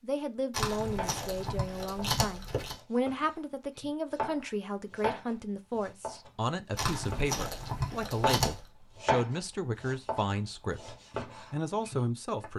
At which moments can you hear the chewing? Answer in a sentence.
The chewing can be heard from 0.5 to 2.8 s and from 6.8 to 8.7 s.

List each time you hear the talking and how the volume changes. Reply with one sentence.
You can hear the talking from 0.0 to 12.5 s, at a steady volume.